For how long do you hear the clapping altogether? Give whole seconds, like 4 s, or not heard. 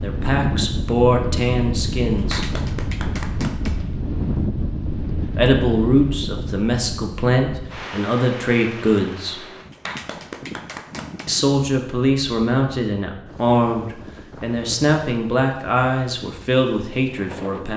3 s.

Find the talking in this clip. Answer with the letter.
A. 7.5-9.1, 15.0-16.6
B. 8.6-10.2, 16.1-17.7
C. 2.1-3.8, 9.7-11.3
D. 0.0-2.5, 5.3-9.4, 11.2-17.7
D.